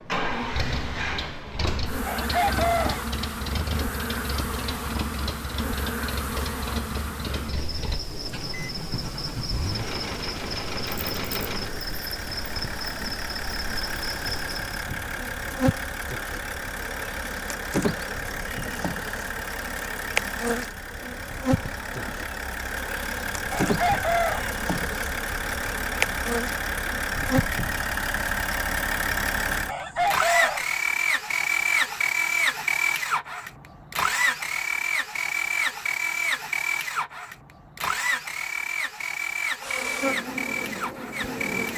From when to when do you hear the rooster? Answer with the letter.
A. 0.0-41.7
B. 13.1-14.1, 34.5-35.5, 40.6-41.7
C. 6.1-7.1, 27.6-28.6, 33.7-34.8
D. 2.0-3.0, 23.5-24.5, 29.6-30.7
D.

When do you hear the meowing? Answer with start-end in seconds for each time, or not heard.
not heard.